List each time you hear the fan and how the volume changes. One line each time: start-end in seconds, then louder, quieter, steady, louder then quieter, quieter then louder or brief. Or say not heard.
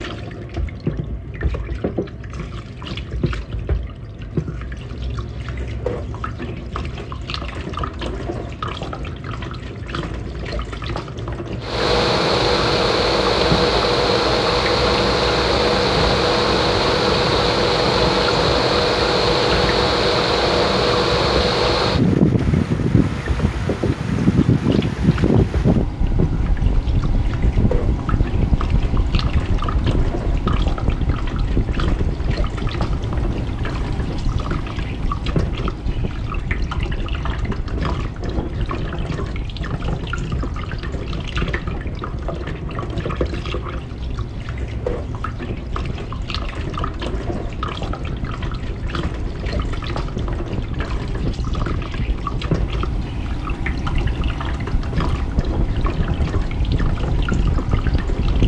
11.6-58.4 quieter then louder.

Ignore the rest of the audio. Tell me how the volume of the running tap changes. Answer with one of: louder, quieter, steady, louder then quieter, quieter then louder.
steady.